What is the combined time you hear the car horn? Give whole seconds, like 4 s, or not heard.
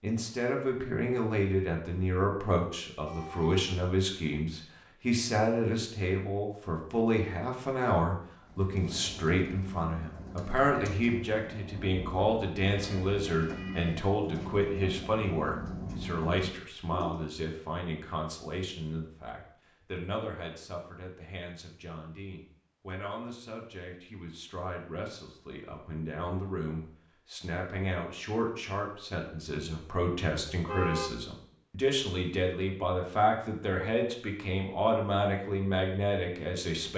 3 s.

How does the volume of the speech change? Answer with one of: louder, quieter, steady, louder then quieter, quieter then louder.
quieter then louder.